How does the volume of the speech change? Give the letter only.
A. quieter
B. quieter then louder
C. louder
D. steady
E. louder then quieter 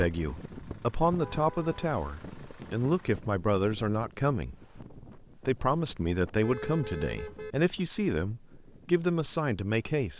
D.